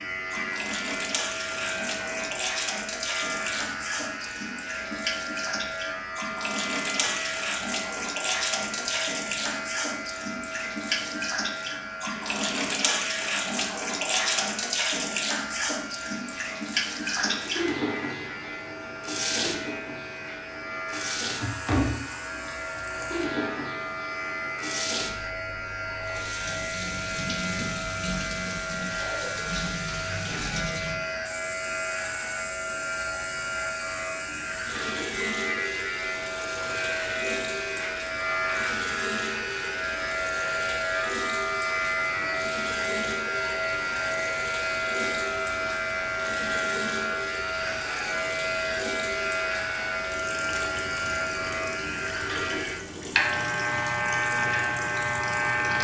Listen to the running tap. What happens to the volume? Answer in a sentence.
The loudness of the running tap goes down.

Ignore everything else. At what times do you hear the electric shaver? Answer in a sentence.
You can hear the electric shaver from 0.0 to 55.8 s.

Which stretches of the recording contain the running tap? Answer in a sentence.
The running tap can be heard from 0.0 to 55.8 s.